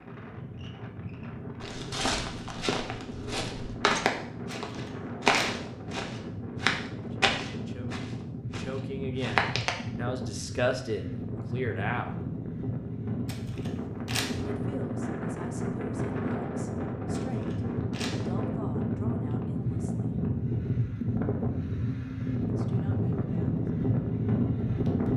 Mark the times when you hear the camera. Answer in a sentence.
You can hear the camera from 4.7 to 5.6 s, from 13.2 to 14.4 s and from 17.1 to 18.2 s.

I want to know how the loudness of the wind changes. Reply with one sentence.
The loudness of the wind goes up.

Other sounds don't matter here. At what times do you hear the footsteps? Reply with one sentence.
You can hear the footsteps from 1.6 to 9.7 s.